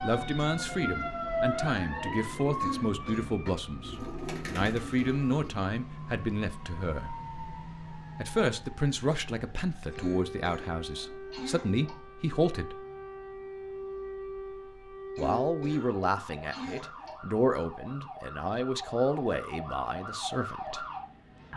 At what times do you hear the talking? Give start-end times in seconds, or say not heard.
0.0-7.2, 8.2-12.8, 15.2-20.9.